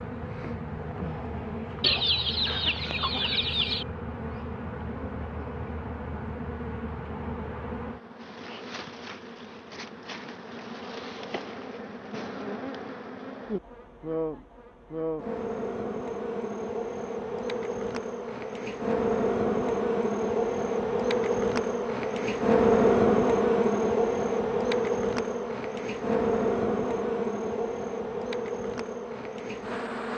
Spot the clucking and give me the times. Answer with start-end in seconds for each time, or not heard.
1.8-3.9.